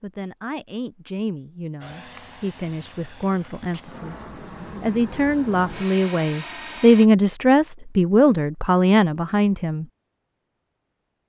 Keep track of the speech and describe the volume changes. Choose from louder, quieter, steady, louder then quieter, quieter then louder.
louder.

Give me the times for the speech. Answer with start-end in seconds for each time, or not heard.
0.0-9.8.